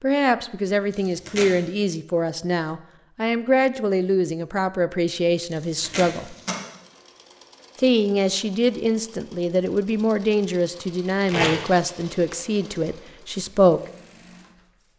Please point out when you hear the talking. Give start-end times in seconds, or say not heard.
0.0-6.3, 7.8-13.8.